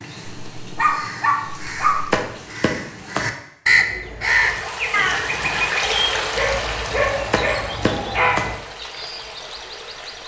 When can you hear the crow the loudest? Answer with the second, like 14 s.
4 s.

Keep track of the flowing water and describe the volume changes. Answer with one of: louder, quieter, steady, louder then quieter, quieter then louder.
quieter.